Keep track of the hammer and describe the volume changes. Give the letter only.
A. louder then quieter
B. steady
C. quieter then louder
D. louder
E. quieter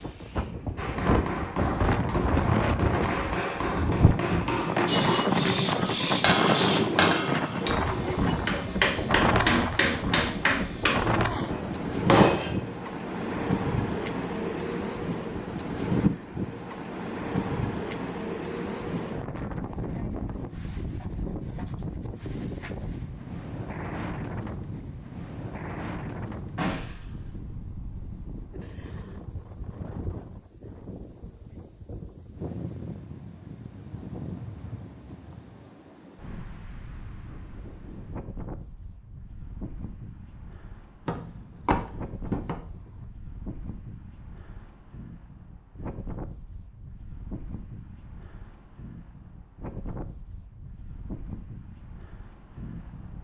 D.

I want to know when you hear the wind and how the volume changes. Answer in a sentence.
You can hear the wind from 0.0 to 53.1 s, getting quieter.